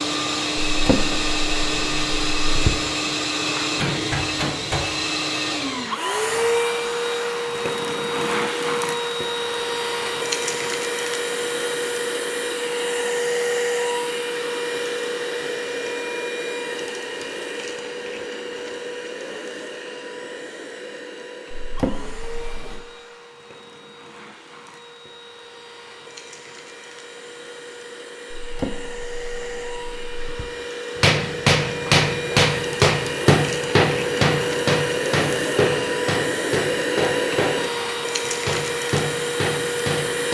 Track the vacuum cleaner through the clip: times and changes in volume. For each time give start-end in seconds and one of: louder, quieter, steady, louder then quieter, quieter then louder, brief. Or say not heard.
0.0-40.2 quieter then louder.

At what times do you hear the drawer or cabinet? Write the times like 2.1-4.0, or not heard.
0.7-2.7, 21.5-22.9, 28.4-30.4.